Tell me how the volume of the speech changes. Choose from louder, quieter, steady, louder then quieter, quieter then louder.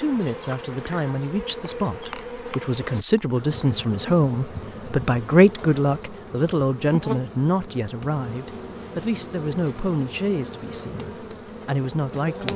louder then quieter.